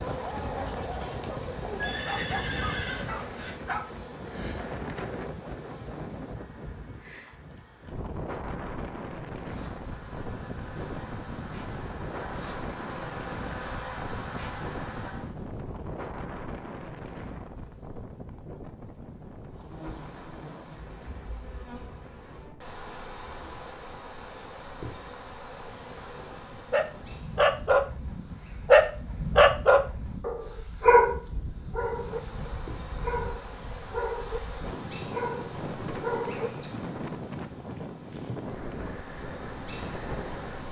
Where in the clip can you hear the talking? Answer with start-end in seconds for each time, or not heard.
not heard.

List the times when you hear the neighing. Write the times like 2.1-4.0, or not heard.
1.8-3.5.